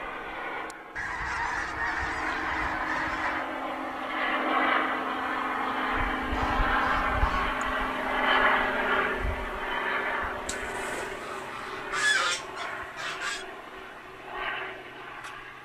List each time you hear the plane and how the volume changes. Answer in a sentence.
The plane can be heard from 0.0 to 15.6 s, getting louder then quieter.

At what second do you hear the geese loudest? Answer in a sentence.
The volume of the geese peaks at 12 seconds.